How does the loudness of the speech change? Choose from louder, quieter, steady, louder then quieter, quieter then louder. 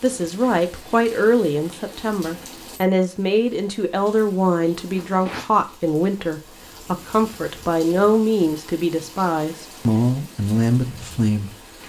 steady.